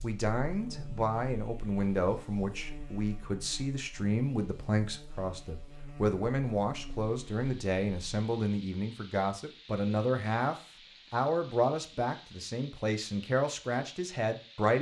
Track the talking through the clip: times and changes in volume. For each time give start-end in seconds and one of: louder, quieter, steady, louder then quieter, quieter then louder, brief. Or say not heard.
0.0-14.7 steady.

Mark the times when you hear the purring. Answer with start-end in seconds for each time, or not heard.
not heard.